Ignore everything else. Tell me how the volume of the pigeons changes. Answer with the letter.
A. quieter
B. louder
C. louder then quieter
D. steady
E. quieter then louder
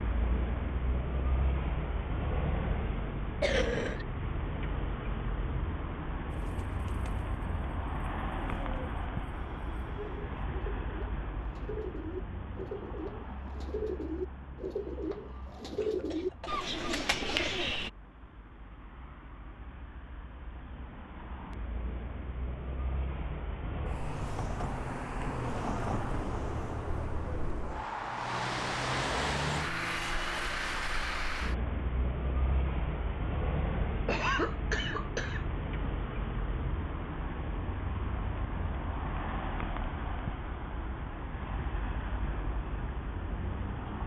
B.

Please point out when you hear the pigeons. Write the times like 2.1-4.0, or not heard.
6.3-17.9.